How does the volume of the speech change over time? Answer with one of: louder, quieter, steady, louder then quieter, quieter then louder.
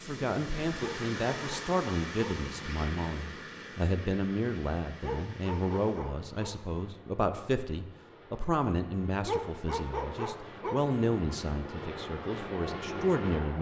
steady.